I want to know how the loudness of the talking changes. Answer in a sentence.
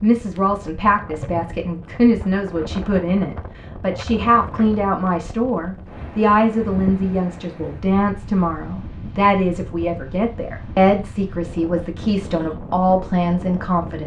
The loudness of the talking stays about the same.